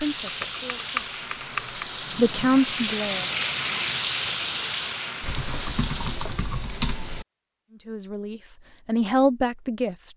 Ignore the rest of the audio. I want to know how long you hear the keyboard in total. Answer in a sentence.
The keyboard can be heard for 4 seconds in total.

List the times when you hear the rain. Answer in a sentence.
You can hear the rain from 0.0 to 6.4 s.